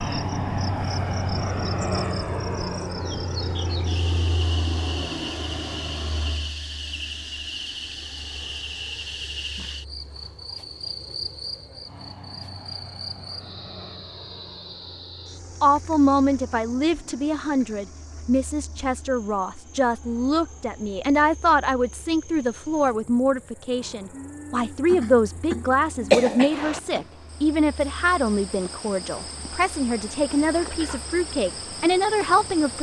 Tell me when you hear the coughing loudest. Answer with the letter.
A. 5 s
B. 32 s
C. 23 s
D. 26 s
D.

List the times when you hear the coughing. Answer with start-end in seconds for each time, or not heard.
24.9-27.1.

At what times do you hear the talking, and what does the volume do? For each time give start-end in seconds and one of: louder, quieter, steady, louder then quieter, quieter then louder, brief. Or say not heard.
15.6-32.7 steady.